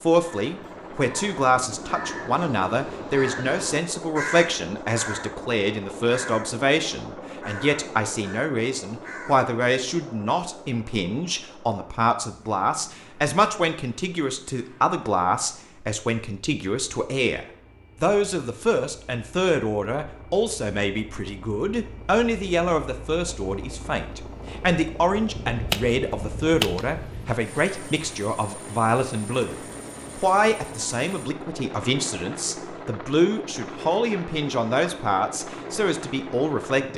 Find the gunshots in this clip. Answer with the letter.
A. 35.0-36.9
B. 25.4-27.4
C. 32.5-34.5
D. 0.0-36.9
B.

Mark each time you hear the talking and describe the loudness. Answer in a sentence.
You can hear the talking from 0.0 to 36.9 s, at a steady volume.